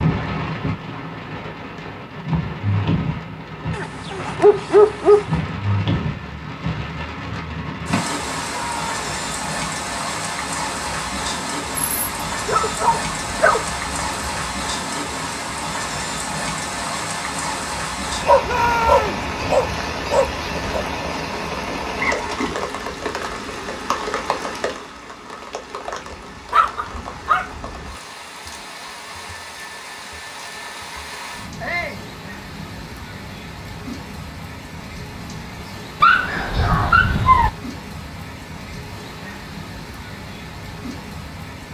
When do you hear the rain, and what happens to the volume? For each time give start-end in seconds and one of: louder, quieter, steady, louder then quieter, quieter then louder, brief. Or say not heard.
0.0-41.7 quieter.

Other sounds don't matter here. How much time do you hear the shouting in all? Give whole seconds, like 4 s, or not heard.
2 s.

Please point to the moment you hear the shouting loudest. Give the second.
19 s.